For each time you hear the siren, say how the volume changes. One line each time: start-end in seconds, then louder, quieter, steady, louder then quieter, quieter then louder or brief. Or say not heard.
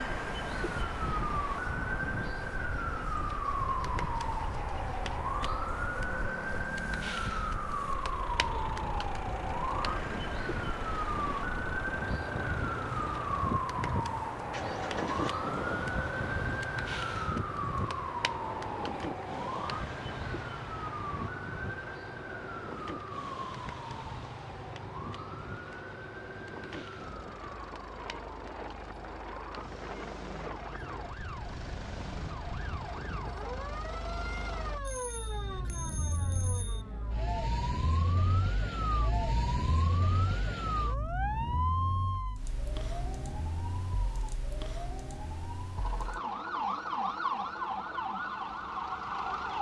0.0-49.5 quieter then louder.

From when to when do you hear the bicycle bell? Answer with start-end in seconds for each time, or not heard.
34.9-36.9.